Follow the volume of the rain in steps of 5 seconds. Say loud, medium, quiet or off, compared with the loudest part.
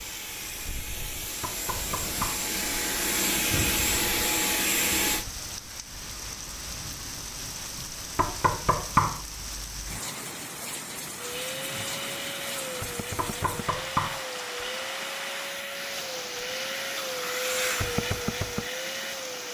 medium, loud, loud, loud.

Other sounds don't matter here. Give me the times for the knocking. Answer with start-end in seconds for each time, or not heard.
1.4-2.5, 8.2-9.2, 13.2-14.2.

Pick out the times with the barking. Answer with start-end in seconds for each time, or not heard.
not heard.